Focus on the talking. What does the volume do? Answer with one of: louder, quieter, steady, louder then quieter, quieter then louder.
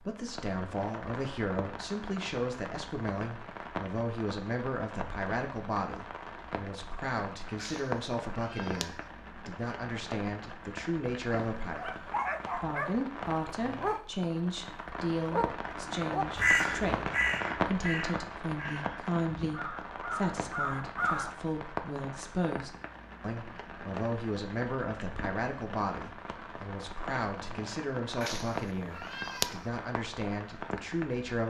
steady.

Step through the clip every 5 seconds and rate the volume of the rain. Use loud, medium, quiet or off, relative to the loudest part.
medium, medium, medium, loud, medium, medium, medium.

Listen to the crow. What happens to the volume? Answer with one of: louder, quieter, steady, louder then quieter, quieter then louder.
quieter then louder.